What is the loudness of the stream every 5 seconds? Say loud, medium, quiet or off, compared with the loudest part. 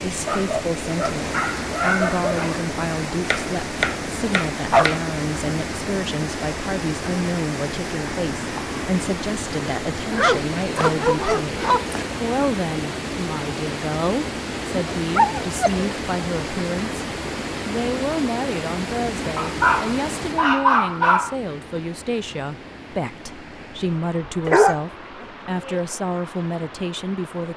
loud, loud, loud, loud, medium, medium.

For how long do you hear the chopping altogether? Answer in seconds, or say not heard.
2 s.